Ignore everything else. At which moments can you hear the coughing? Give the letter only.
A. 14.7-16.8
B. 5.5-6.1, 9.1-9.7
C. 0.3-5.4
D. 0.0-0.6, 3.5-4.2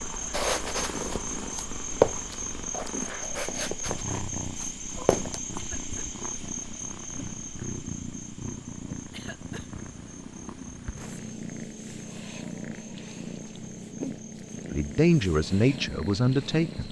B.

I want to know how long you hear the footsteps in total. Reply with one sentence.
The footsteps can be heard for 5 seconds in total.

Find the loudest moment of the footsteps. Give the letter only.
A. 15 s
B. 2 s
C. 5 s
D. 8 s
B.